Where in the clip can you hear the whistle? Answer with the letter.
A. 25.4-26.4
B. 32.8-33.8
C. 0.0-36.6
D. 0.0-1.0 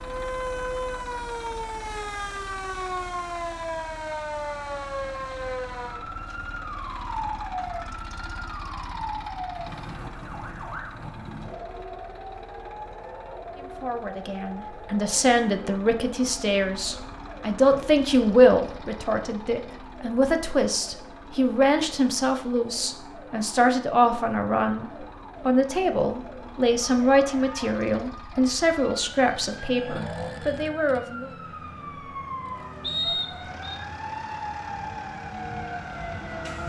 B.